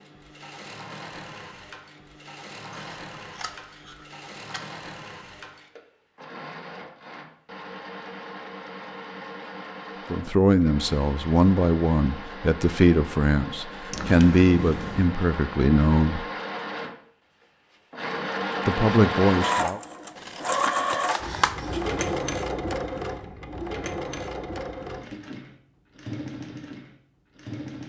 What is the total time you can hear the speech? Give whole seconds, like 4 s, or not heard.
7 s.